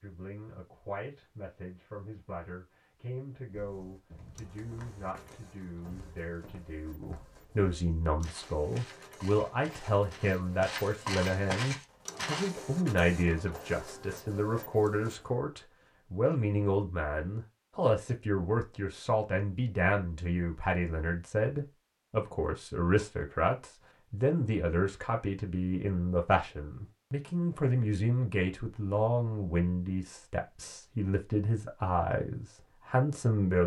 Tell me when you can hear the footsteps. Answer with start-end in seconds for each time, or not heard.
3.5-12.6.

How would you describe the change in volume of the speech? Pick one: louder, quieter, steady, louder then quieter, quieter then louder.
louder.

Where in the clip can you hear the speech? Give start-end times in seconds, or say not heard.
0.0-33.6.